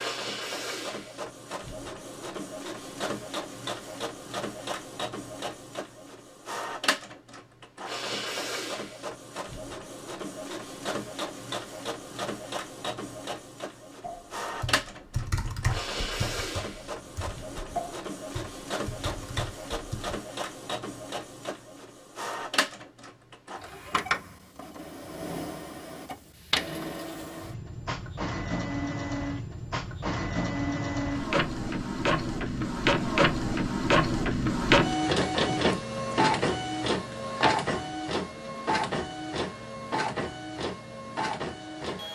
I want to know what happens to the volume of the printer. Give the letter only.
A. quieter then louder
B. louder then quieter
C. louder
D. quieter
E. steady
C.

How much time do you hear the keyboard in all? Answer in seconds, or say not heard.
6 s.